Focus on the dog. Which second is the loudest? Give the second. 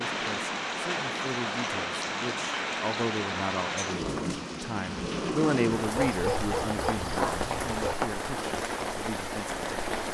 6 s.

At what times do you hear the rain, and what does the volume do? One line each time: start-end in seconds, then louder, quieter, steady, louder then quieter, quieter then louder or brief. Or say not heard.
0.0-10.0 steady.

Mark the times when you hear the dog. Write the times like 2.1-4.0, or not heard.
6.0-8.0.